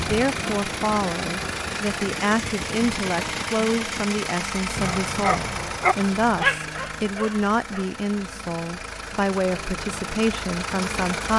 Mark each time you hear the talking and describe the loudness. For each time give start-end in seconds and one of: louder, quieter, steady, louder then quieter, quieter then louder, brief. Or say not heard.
0.0-11.3 steady.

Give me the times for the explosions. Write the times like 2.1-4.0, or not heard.
4.8-6.2.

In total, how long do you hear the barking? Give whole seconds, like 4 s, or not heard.
3 s.